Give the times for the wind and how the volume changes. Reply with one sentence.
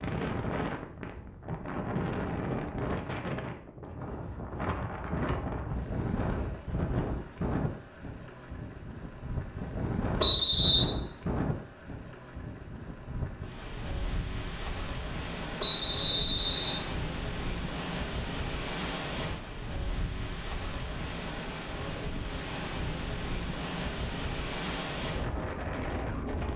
The wind can be heard from 0.0 to 26.5 s, at a steady volume.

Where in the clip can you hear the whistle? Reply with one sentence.
The whistle can be heard from 10.2 to 10.9 s and from 15.6 to 16.8 s.